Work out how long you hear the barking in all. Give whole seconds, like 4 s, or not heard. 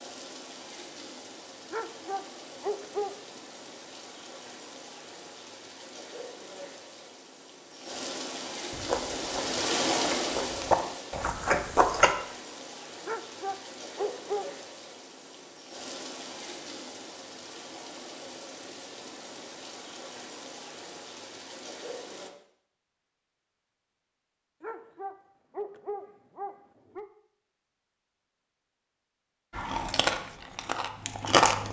5 s.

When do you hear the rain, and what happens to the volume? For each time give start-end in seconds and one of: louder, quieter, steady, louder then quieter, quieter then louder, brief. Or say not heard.
0.0-22.3 louder then quieter.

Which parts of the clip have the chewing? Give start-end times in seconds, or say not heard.
8.7-12.2, 29.6-31.6.